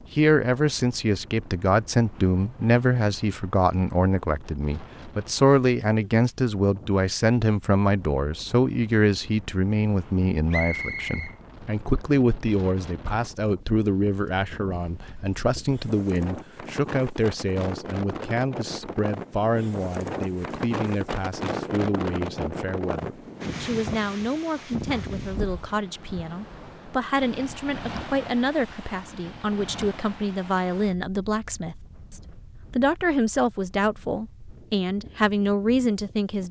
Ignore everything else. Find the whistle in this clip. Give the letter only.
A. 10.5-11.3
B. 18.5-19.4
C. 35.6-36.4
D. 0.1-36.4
A.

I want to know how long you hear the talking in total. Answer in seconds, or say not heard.
36 s.